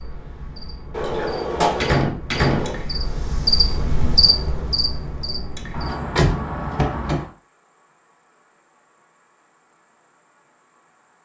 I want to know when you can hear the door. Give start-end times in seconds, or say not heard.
0.9-2.8, 5.7-7.3.